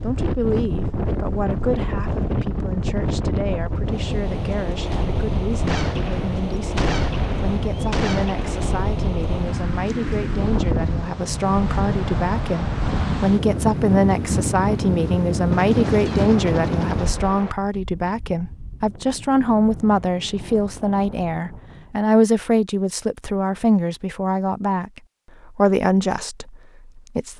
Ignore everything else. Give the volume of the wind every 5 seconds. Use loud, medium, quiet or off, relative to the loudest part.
loud, loud, loud, loud, quiet, off.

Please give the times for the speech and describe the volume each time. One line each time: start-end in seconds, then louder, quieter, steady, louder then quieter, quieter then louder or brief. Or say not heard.
0.0-27.3 louder.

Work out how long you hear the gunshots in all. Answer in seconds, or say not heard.
5 s.